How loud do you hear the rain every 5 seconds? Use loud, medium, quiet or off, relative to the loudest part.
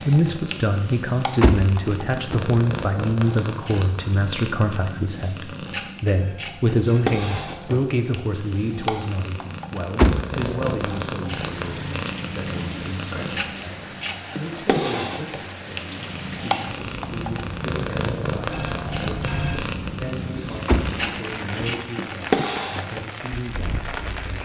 off, off, loud, loud, loud.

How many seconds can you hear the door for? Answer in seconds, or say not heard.
3 s.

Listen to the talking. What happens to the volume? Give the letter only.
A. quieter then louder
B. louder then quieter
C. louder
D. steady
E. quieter
E.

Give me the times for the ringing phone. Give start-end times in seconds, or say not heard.
6.1-7.8, 18.5-19.6.